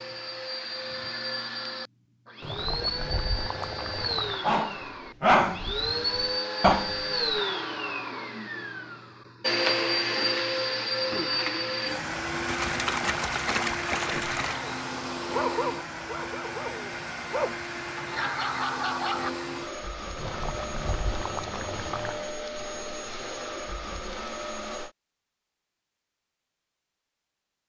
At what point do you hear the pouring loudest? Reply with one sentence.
The volume of the pouring peaks at 14 seconds.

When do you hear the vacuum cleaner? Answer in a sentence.
The vacuum cleaner can be heard from 0.0 to 24.9 s.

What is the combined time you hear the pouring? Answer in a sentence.
The pouring can be heard for 6 seconds in total.